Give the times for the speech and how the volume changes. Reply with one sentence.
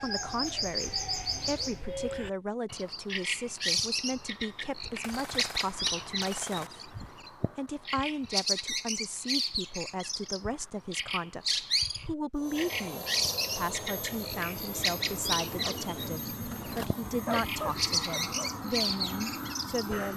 The speech can be heard from 0.0 to 20.1 s, at a steady volume.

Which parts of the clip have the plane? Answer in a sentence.
You can hear the plane from 12.3 to 20.1 s.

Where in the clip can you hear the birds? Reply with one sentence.
The birds can be heard from 0.0 to 20.0 s.